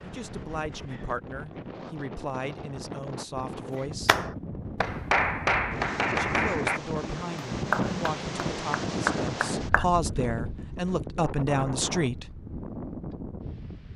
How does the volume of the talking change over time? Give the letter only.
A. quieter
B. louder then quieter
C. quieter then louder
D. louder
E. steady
D.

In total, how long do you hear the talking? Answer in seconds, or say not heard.
10 s.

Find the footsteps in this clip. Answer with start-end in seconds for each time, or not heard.
not heard.